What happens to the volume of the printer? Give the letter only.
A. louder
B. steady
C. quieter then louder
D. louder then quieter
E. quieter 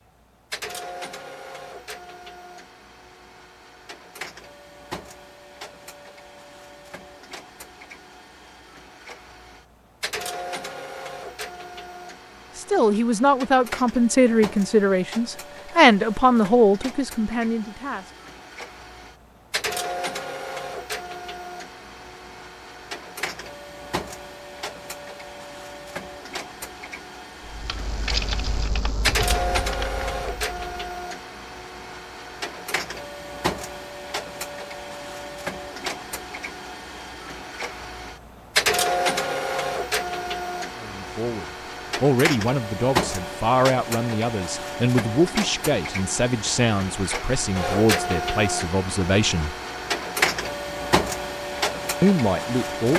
A.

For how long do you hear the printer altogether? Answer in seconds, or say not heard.
53 s.